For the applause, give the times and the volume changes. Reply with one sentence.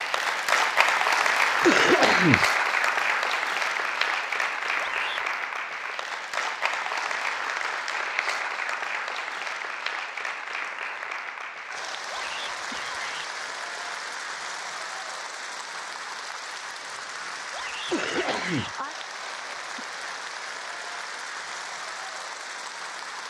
The applause can be heard from 0.0 to 23.2 s, getting quieter.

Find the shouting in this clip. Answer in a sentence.
You can hear the shouting from 4.8 to 5.3 s, from 12.1 to 13.3 s and from 17.5 to 18.8 s.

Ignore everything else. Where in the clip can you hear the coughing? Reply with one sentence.
You can hear the coughing from 1.6 to 2.5 s and from 17.9 to 18.7 s.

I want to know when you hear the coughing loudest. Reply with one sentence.
The loudest moment of the coughing is at 2 seconds.